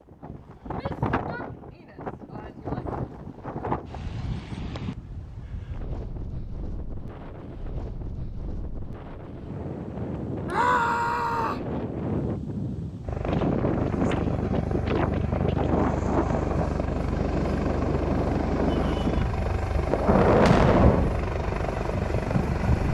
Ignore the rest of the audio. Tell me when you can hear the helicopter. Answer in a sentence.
The helicopter can be heard from 13.0 to 22.9 s.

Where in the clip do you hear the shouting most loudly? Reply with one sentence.
The loudest moment of the shouting is at 11 seconds.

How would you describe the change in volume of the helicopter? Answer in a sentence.
The volume of the helicopter stays about the same.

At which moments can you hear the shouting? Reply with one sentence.
The shouting can be heard from 0.7 to 2.9 s, from 10.4 to 11.7 s and from 18.6 to 19.3 s.